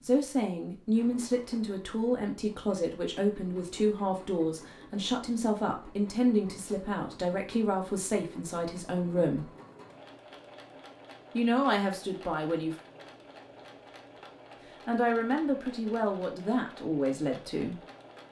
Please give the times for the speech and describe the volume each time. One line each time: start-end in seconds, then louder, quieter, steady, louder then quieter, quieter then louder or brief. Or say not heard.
0.0-9.5 steady
11.3-12.8 brief
14.8-17.8 brief.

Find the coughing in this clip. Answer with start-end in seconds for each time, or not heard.
not heard.